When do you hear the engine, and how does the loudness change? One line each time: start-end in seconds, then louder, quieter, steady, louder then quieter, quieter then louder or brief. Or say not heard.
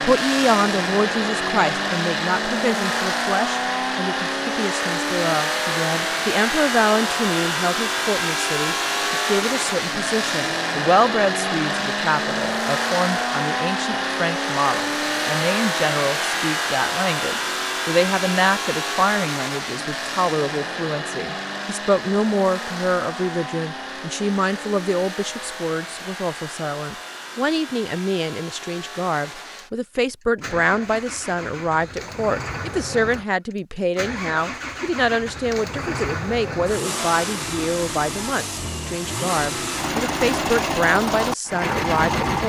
0.0-42.4 quieter then louder.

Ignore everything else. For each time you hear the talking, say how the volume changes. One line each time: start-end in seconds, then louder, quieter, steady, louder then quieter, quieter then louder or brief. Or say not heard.
0.0-42.4 steady.